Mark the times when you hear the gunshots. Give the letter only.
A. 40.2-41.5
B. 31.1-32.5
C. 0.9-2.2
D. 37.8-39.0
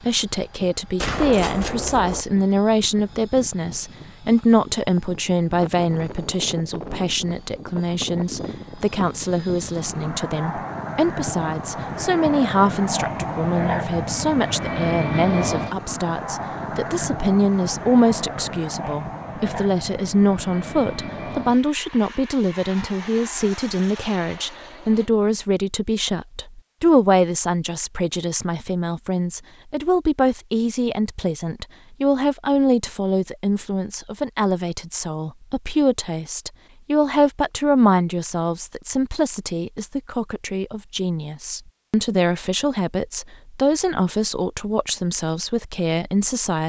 C.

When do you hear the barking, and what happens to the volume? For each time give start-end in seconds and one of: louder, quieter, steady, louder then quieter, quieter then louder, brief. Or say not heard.
not heard.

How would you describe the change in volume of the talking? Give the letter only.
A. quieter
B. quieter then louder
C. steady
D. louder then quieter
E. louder
C.